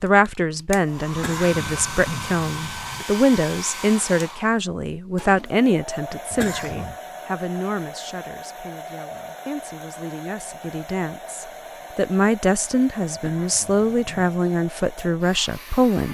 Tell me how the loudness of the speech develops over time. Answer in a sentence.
The loudness of the speech goes down, then up.